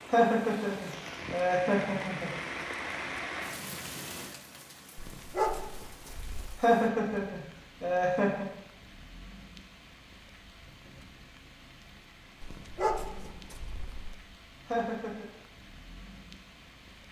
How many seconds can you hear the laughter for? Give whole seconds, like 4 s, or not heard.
5 s.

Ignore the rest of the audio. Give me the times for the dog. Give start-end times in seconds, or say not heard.
5.0-6.6, 12.4-14.2.